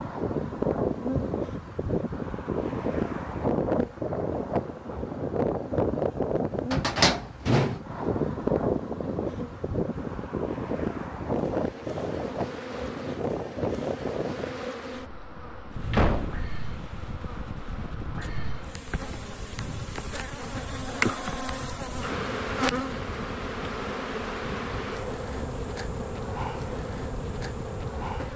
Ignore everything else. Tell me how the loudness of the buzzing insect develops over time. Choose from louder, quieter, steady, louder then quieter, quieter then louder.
louder.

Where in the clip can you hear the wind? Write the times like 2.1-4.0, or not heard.
0.0-28.3.